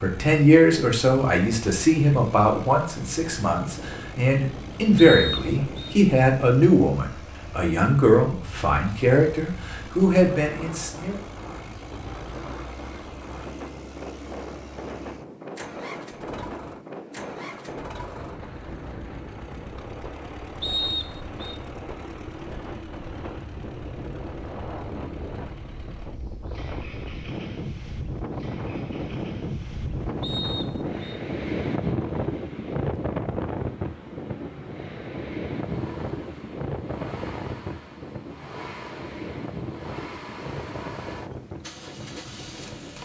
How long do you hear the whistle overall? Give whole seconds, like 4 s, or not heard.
3 s.